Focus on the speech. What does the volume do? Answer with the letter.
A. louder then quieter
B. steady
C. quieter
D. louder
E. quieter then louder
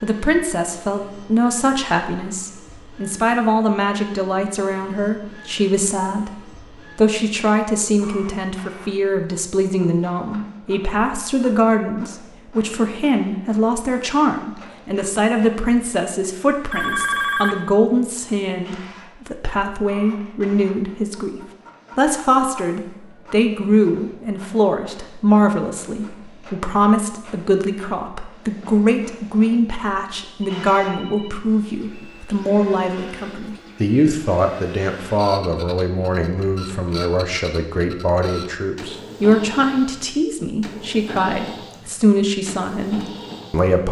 B.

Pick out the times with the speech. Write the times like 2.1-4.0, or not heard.
0.0-43.8.